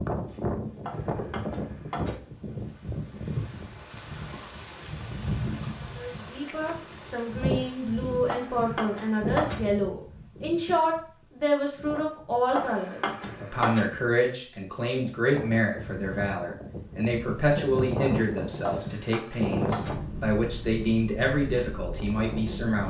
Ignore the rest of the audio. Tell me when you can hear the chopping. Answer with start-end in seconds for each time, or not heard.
0.8-2.1, 8.2-9.6, 12.6-13.8, 18.6-19.9.